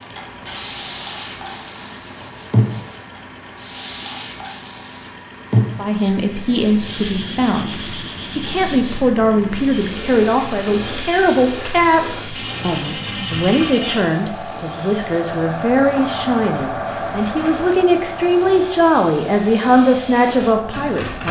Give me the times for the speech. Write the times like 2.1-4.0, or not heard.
5.8-21.2.